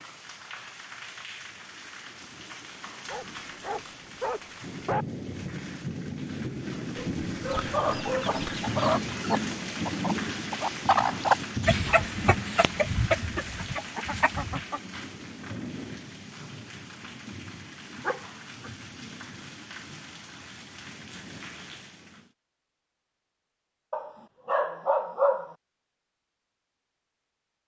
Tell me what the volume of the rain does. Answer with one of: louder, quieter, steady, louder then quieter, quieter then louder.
louder then quieter.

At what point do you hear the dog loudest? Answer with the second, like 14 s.
25 s.